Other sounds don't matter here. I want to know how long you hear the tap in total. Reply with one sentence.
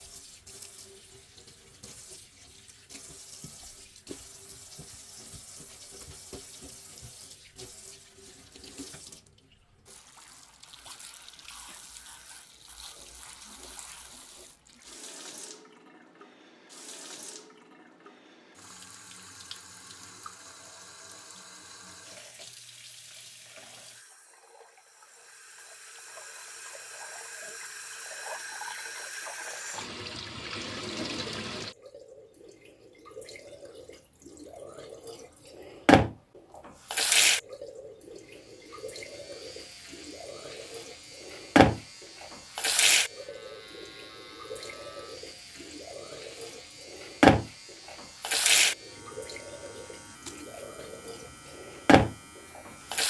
You can hear the tap for 53 seconds altogether.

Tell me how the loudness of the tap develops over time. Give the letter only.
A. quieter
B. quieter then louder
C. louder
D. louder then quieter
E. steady
C.